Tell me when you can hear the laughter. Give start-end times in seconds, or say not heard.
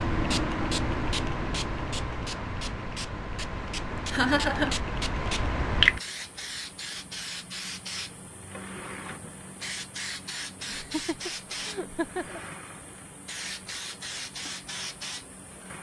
4.1-4.8, 10.7-12.4.